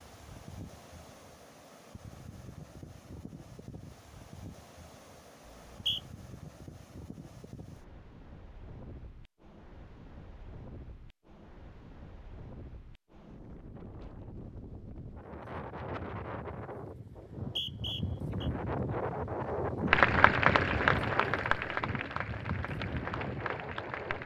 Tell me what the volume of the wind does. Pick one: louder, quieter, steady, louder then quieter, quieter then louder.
louder.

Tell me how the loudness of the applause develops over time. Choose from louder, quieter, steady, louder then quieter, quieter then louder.
quieter.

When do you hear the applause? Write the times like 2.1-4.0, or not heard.
19.9-24.2.